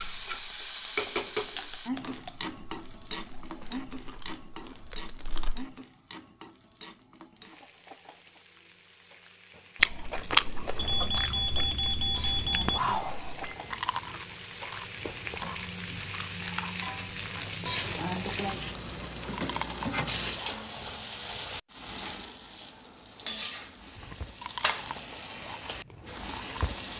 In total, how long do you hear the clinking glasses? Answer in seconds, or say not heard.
2 s.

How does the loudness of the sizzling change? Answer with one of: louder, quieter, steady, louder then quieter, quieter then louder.
quieter then louder.